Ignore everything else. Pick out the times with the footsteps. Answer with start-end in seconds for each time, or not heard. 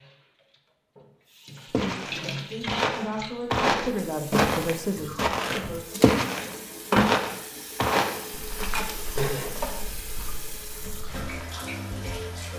1.7-11.5.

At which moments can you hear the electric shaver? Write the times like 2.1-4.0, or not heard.
not heard.